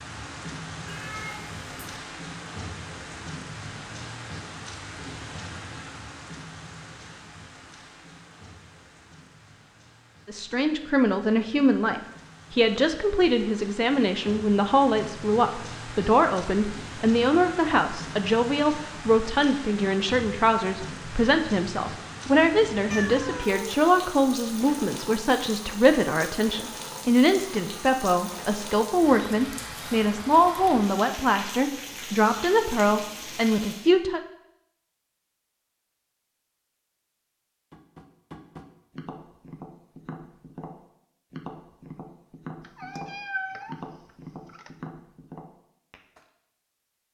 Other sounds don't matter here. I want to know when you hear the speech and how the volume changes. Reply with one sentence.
You can hear the speech from 10.2 to 34.2 s, at a steady volume.